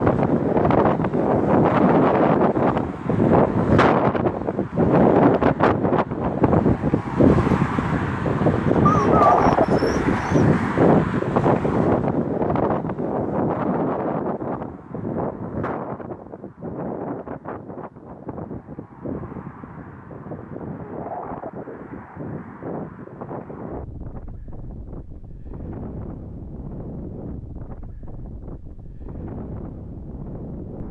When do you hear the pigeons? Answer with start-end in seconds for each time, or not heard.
8.8-10.4.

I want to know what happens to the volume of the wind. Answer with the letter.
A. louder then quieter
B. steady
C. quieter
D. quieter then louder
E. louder
C.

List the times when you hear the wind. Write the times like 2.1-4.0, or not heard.
0.0-30.8.